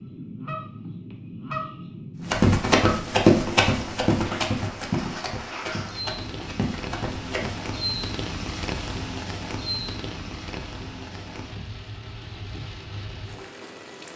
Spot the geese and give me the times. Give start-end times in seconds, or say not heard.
0.0-3.2.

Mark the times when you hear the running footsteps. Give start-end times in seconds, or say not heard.
2.2-7.8.